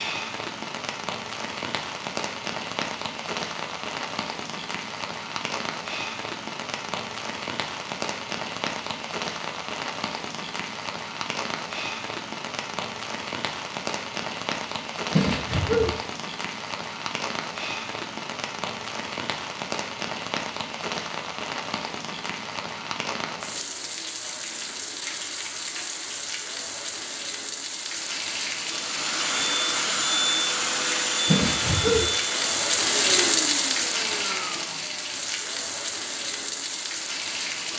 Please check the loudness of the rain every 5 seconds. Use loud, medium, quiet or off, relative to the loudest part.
medium, medium, medium, medium, medium, medium, loud, medium.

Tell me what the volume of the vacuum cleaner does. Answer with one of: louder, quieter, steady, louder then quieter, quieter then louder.
quieter.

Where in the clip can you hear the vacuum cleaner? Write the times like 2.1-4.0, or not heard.
28.6-34.9.